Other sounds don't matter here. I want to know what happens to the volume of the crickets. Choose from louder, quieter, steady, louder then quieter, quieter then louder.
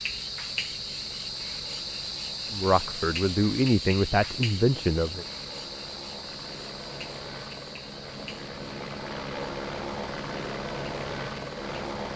quieter.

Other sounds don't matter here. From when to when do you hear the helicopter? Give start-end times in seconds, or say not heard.
0.0-12.1.